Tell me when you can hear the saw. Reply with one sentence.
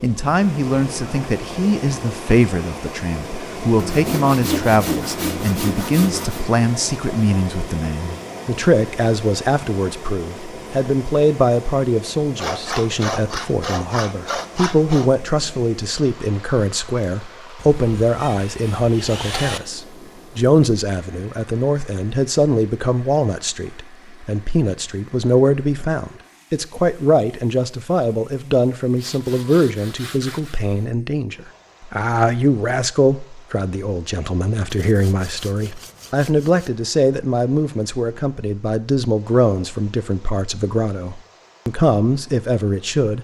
The saw can be heard from 3.8 to 6.5 s, from 12.3 to 15.1 s, from 17.6 to 19.6 s, from 28.9 to 30.6 s and from 34.7 to 36.7 s.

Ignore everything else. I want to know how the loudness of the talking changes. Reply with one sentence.
The loudness of the talking stays about the same.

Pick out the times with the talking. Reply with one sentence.
You can hear the talking from 0.0 to 43.1 s.